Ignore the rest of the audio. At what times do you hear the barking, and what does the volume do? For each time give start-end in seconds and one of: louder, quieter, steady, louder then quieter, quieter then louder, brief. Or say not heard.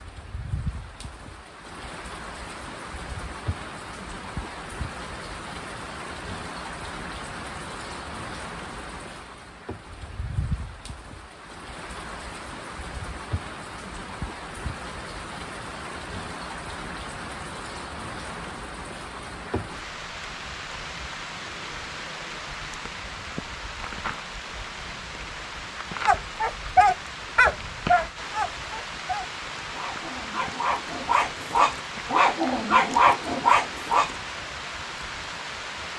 26.1-34.1 quieter then louder.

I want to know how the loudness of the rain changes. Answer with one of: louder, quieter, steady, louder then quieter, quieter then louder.
steady.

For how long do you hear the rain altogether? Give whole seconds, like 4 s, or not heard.
36 s.